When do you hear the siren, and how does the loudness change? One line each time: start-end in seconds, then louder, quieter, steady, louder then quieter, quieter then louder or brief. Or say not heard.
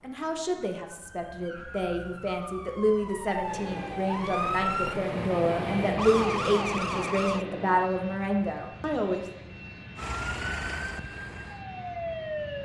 0.0-7.5 louder
9.9-12.6 brief.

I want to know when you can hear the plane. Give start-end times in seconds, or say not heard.
3.5-12.6.